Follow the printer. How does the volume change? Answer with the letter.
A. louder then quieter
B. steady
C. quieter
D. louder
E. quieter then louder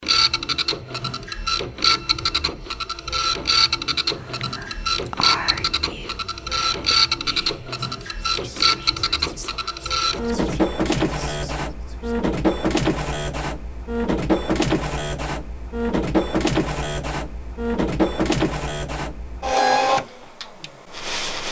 B.